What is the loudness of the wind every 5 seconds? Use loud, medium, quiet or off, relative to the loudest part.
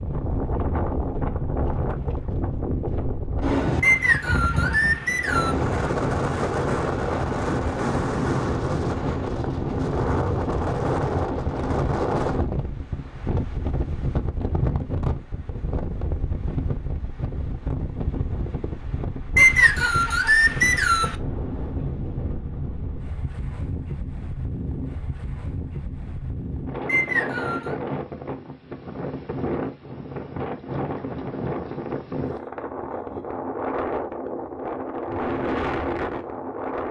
loud, loud, loud, medium, medium, medium, medium, loud.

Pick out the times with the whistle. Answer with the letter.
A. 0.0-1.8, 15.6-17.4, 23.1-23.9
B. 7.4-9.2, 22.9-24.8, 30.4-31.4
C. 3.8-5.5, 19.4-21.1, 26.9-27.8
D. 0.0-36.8
C.